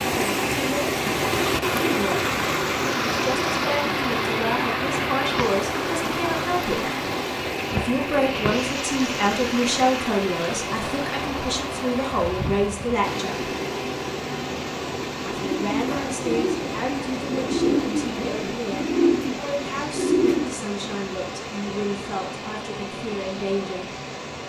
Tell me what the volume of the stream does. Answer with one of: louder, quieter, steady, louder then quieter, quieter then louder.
quieter.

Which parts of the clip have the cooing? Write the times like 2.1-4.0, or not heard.
15.2-20.6.